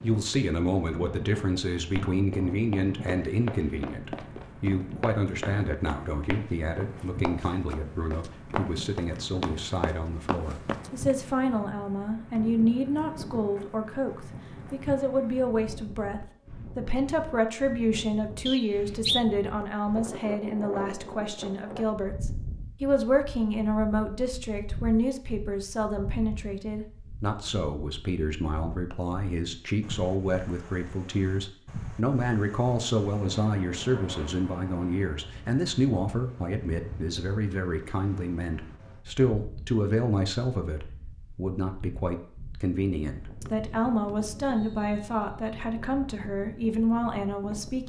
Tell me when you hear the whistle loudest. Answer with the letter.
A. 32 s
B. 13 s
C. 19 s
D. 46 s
C.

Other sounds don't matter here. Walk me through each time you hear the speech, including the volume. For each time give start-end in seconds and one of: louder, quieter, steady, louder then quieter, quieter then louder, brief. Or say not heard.
0.0-47.8 steady.